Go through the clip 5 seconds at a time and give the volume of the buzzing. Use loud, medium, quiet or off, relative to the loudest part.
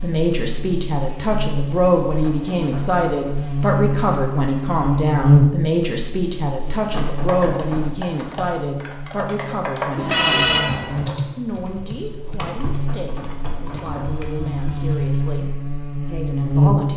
medium, loud, medium, loud.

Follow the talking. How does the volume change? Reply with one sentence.
The volume of the talking goes down.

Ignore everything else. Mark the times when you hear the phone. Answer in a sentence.
You can hear the phone from 9.9 to 11.2 s.